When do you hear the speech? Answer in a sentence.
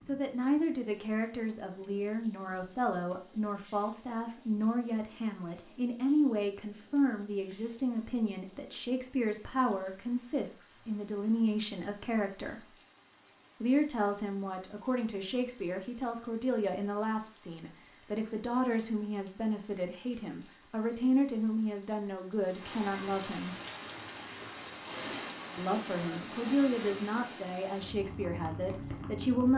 The speech can be heard from 0.0 to 12.6 s, from 13.6 to 23.6 s and from 25.6 to 29.5 s.